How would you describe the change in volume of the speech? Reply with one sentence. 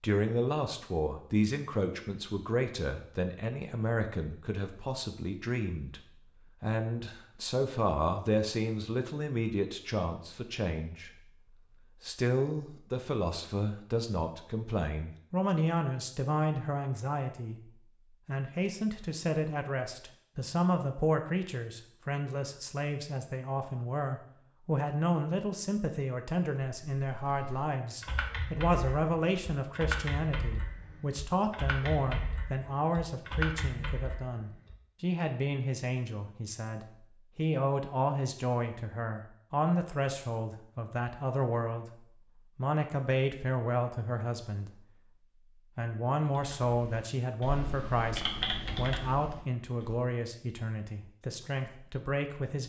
The volume of the speech stays about the same.